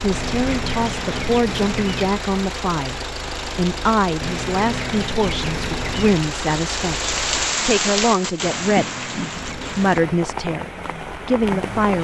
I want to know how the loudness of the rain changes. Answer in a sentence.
The loudness of the rain goes up, then down.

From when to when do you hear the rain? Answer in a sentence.
The rain can be heard from 0.0 to 11.9 s.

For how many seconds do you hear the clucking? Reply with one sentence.
The clucking can be heard for 6 seconds in total.